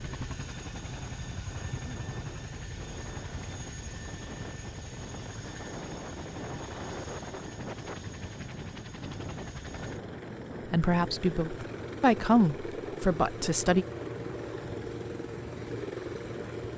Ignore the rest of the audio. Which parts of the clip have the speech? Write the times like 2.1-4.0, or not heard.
10.7-13.8.